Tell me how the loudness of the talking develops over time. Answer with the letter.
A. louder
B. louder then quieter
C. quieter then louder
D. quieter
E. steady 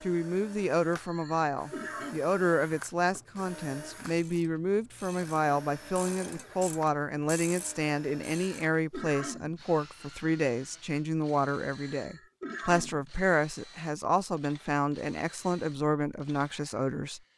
E.